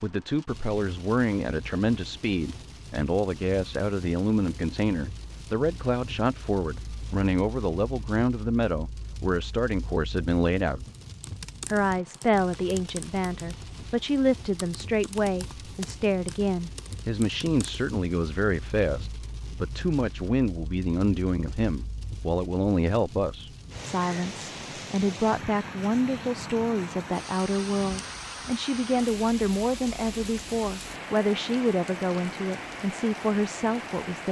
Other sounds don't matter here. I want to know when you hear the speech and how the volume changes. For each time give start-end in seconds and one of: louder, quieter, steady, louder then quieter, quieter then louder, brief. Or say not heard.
0.0-10.8 steady
11.7-34.2 steady.